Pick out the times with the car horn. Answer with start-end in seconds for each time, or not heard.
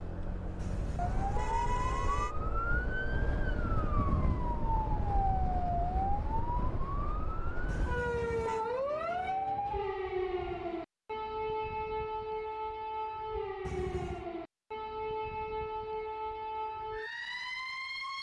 0.6-2.4, 7.7-8.7, 13.6-14.2.